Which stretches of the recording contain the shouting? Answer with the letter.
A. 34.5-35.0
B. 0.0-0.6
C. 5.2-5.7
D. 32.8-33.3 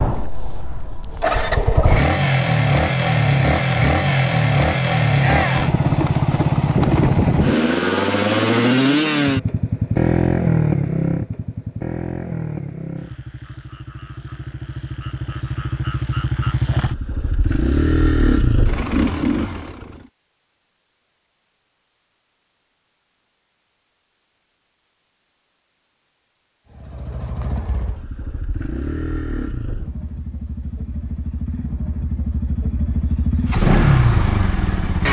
C.